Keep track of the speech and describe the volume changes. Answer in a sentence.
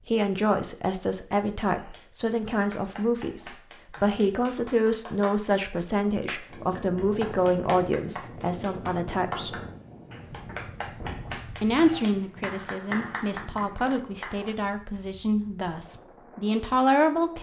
The loudness of the speech stays about the same.